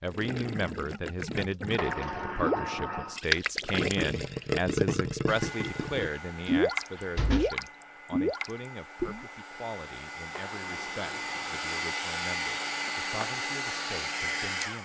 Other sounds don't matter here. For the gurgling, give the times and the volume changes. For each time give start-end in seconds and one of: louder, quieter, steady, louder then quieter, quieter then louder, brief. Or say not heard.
0.1-9.2 louder.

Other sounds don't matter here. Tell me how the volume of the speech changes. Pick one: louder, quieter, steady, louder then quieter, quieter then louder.
quieter.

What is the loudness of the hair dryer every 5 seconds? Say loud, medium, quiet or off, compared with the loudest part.
off, medium, loud.